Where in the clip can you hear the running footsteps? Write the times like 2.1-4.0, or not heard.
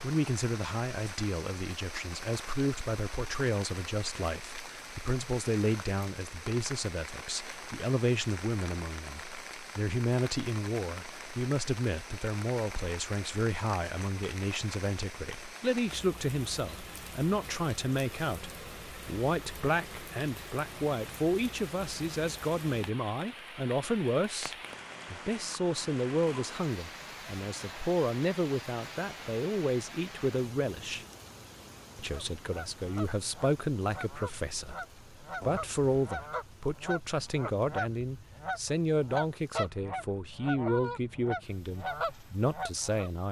not heard.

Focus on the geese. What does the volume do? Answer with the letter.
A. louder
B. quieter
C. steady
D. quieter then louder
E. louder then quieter
A.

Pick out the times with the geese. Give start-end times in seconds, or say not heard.
32.0-43.1.